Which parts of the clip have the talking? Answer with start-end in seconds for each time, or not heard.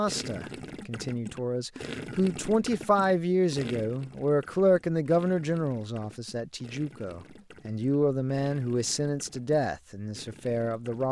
0.0-11.0.